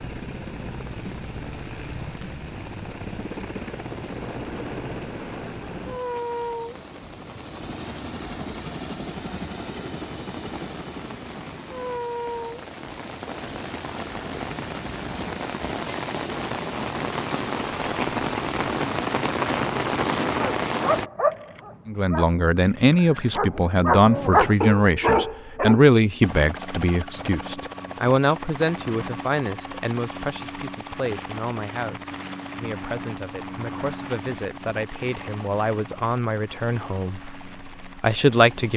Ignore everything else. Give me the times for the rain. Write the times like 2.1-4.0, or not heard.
0.0-21.1.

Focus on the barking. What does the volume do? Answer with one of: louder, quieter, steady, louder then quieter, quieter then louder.
quieter then louder.